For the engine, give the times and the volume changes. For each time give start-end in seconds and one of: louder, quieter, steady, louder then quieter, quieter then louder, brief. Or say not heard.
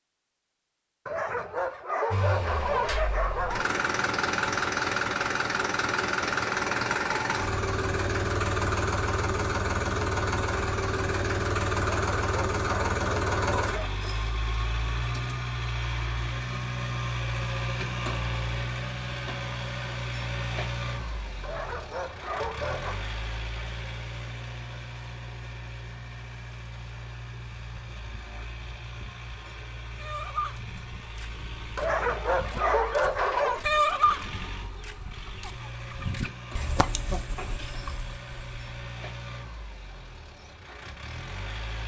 2.1-41.8 quieter.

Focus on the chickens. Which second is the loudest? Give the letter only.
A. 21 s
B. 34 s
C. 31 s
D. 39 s
B.